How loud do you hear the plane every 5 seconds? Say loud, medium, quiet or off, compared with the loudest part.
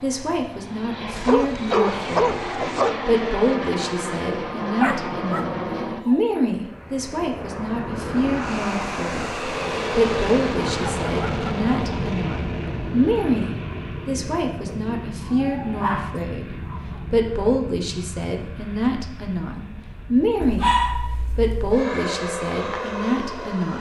loud, loud, loud, medium, loud.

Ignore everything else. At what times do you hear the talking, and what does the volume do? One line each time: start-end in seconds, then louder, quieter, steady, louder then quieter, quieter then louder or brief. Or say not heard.
0.0-20.7 steady
21.4-23.7 brief.